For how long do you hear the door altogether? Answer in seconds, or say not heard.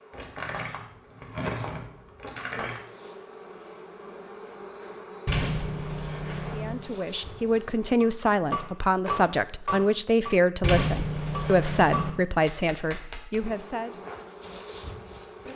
6 s.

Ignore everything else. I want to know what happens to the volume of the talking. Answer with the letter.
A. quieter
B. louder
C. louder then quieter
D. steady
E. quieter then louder
D.